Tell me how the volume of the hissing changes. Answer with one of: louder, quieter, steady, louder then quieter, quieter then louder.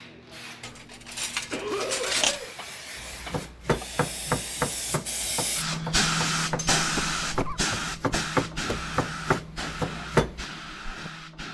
louder then quieter.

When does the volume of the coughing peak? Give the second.
2 s.